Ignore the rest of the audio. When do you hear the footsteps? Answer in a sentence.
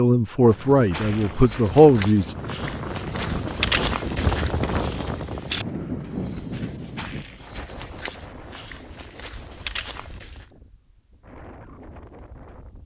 The footsteps can be heard from 0.5 to 10.4 s.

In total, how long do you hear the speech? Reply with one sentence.
You can hear the speech for 2 seconds altogether.